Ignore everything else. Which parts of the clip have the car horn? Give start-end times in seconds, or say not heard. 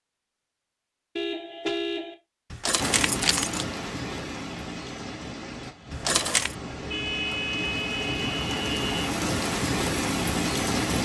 1.1-2.1, 6.3-9.1.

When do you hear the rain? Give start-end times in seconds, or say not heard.
2.8-10.9.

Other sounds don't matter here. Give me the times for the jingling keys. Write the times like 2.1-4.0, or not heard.
2.5-3.6, 5.9-6.5.